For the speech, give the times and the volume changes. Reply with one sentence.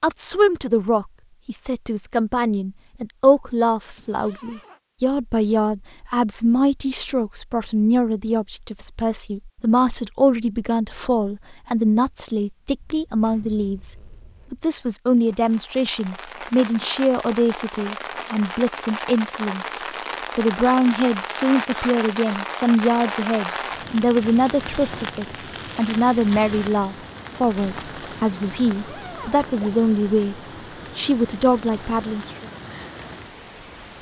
The speech can be heard from 0.0 to 32.5 s, at a steady volume.